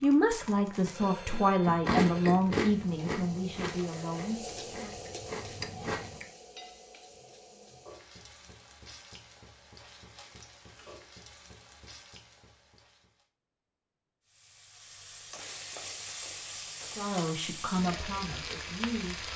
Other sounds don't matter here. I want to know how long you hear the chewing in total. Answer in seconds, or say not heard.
6 s.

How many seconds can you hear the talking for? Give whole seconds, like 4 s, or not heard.
7 s.